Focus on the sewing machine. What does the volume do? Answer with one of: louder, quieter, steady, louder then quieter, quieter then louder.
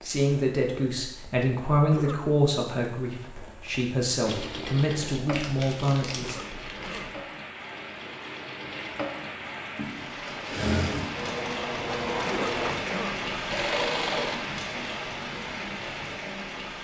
quieter then louder.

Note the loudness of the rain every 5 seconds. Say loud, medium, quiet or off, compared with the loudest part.
quiet, medium, loud, loud.